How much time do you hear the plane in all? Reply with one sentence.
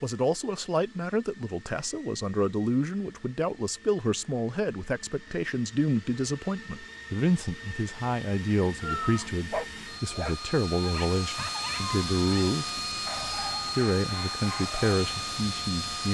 You can hear the plane for 16 seconds altogether.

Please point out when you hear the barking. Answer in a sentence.
The barking can be heard from 8.8 to 15.2 s.